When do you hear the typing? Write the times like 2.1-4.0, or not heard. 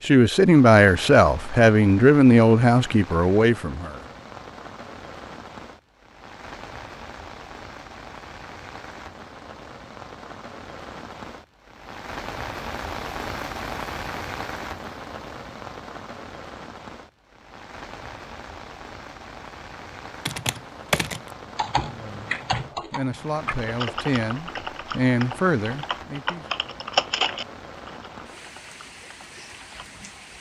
20.2-29.9.